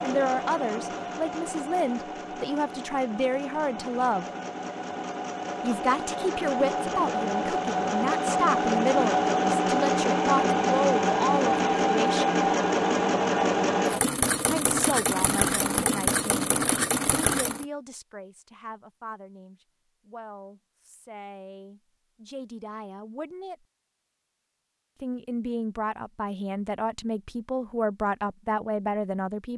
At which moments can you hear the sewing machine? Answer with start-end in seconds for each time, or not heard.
0.0-17.6.